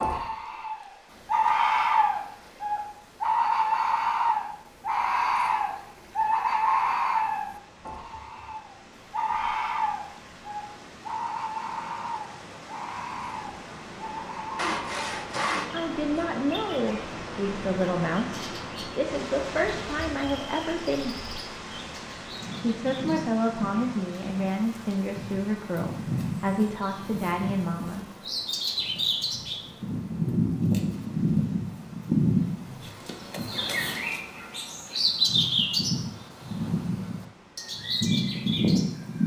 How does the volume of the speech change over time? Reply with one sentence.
The loudness of the speech stays about the same.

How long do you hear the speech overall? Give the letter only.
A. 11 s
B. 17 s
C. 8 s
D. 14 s
A.